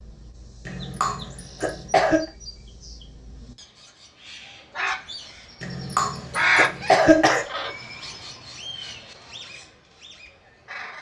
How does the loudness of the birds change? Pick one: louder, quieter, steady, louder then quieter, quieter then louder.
louder then quieter.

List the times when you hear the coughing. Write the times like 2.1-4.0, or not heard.
0.7-2.2, 5.6-7.5.